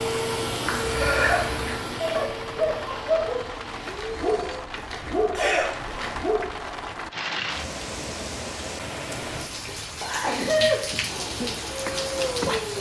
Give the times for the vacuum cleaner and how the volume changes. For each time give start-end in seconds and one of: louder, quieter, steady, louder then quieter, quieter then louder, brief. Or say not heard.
0.0-4.7 quieter
11.1-12.7 brief.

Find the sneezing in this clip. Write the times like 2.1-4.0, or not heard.
0.7-1.7, 5.3-6.1, 9.3-10.8.